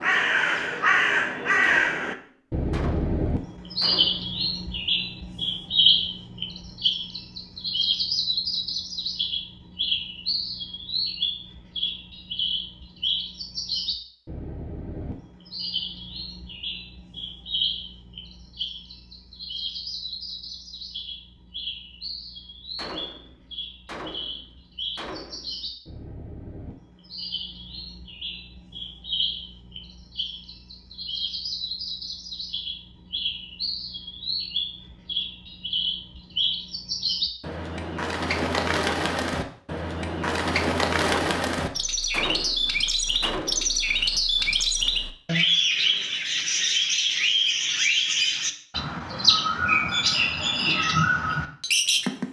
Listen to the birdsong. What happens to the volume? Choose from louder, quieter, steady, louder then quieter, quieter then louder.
quieter then louder.